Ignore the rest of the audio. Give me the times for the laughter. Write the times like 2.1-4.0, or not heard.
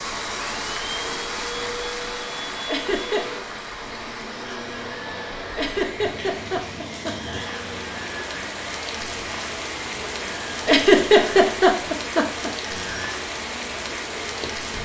2.6-3.4, 5.5-7.3, 10.7-12.5.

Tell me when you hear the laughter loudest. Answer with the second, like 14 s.
11 s.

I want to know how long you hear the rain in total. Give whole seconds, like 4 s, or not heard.
15 s.